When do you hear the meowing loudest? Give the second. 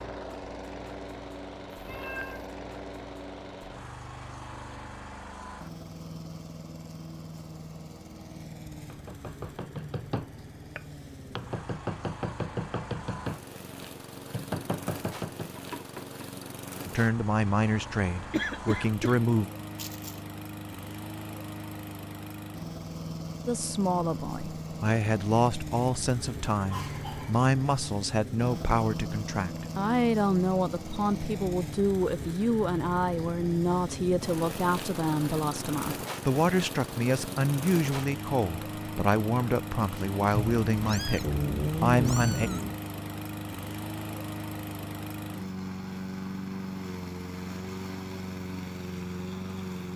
42 s.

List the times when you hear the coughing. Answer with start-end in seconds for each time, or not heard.
18.3-20.1, 26.7-27.5.